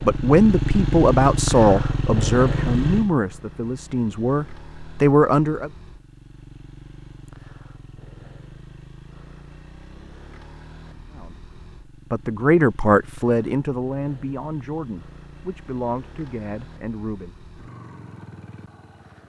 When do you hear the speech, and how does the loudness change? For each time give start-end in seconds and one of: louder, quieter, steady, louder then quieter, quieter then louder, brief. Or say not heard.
0.0-5.7 quieter then louder
11.1-17.4 quieter.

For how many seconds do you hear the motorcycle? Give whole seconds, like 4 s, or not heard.
19 s.